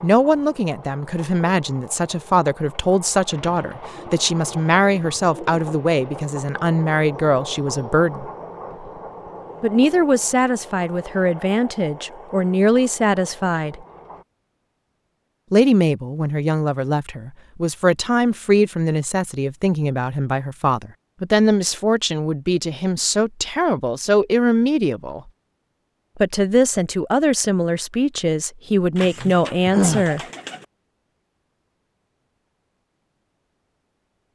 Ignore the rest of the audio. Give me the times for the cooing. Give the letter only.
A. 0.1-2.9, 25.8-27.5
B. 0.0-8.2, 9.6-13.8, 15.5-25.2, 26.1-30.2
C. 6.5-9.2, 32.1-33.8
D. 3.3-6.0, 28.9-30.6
D.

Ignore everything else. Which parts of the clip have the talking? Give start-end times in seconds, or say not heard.
0.0-8.2, 9.6-13.8, 15.5-25.2, 26.1-30.2.